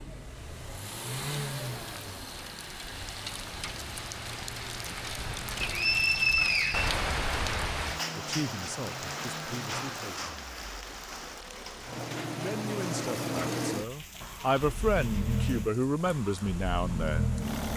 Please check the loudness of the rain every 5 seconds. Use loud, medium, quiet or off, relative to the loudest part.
medium, loud, medium, quiet.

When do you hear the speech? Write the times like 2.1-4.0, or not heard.
8.2-10.3, 12.3-17.3.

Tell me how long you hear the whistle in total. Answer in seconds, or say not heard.
2 s.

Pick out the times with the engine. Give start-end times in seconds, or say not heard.
0.0-17.7.